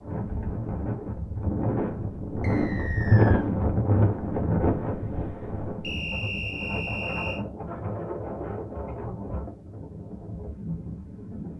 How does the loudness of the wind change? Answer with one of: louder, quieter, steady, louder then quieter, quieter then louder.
louder then quieter.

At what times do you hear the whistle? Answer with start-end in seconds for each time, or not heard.
2.4-3.5, 5.8-7.5.